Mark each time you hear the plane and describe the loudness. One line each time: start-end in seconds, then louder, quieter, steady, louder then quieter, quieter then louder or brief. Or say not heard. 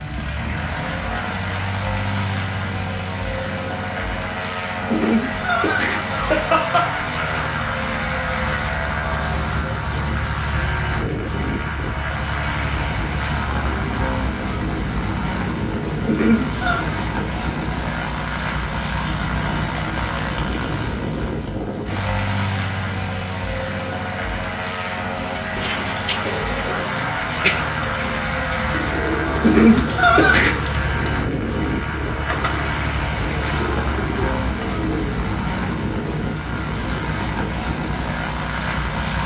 0.0-39.2 steady.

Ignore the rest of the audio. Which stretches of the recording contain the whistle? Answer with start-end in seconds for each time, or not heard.
not heard.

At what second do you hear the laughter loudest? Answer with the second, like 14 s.
30 s.